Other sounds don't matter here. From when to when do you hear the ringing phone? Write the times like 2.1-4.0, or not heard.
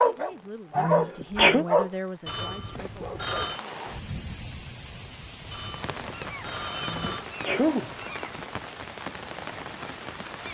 2.2-3.6, 5.5-7.2.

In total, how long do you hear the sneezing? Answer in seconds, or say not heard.
2 s.